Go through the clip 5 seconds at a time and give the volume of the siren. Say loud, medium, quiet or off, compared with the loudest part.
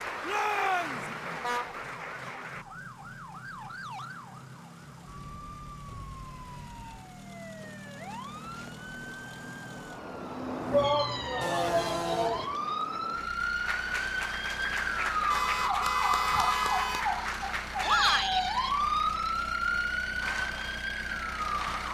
quiet, quiet, medium, loud, medium.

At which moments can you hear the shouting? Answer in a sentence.
The shouting can be heard from 0.2 to 1.1 s, from 10.7 to 12.5 s and from 17.9 to 18.4 s.